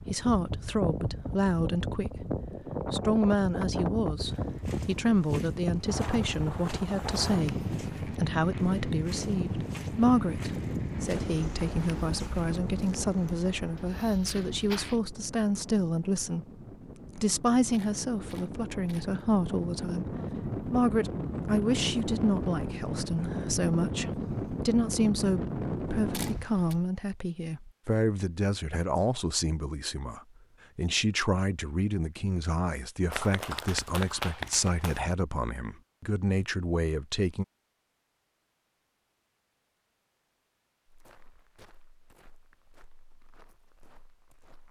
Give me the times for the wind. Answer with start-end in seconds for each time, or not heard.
0.0-26.9.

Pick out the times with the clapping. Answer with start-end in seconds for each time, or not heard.
33.1-35.0.